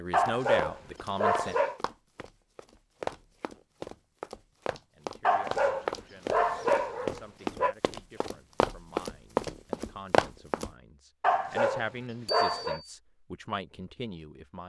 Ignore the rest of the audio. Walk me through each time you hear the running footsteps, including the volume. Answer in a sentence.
You can hear the running footsteps from 0.1 to 10.7 s, getting louder.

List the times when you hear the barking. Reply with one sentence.
You can hear the barking from 0.1 to 1.8 s, from 5.2 to 7.8 s and from 11.2 to 12.8 s.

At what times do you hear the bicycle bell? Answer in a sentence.
The bicycle bell can be heard from 12.2 to 12.9 s.